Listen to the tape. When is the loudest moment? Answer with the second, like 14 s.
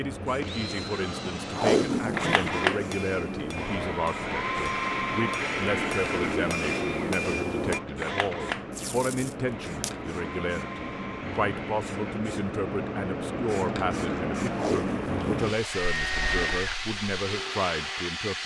2 s.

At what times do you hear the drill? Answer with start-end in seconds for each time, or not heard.
0.2-12.2, 15.6-18.1.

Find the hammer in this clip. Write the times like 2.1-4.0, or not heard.
2.5-7.8.